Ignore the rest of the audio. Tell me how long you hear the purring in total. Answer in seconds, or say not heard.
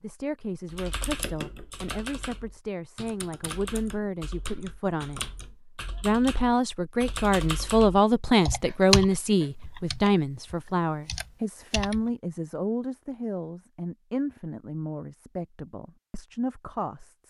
not heard.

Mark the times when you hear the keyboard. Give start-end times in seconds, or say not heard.
0.7-12.1.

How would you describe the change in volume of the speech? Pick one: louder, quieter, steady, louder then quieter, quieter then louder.
louder then quieter.